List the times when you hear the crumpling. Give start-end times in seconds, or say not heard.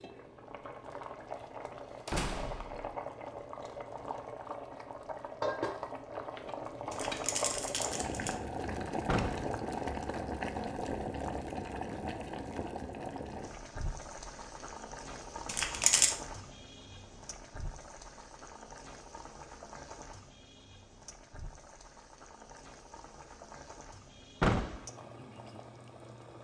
6.9-8.3, 15.4-16.1.